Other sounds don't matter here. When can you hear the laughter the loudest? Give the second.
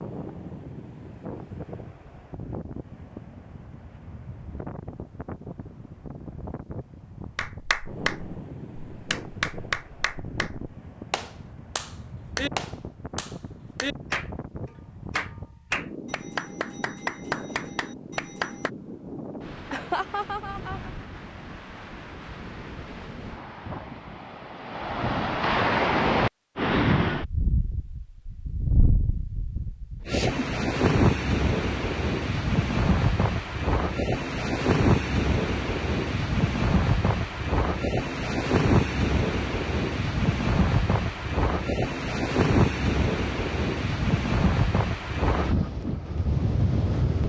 20 s.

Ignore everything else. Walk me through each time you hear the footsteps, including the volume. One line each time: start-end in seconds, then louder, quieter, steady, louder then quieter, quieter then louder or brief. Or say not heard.
not heard.